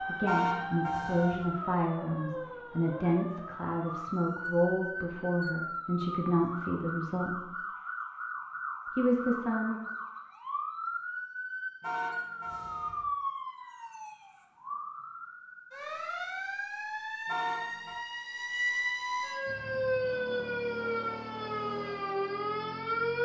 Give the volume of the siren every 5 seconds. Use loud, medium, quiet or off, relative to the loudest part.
medium, medium, medium, loud, loud.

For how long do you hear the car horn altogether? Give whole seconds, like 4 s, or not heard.
3 s.